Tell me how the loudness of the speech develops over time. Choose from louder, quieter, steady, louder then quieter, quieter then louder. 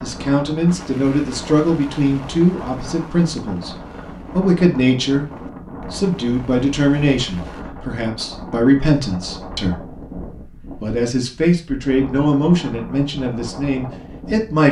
steady.